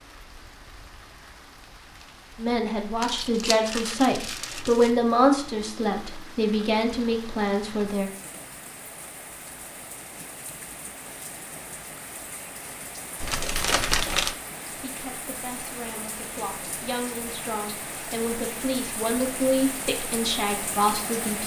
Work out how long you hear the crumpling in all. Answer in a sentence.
The crumpling can be heard for 3 seconds in total.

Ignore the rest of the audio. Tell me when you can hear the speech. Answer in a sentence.
You can hear the speech from 2.4 to 8.1 s and from 14.7 to 21.4 s.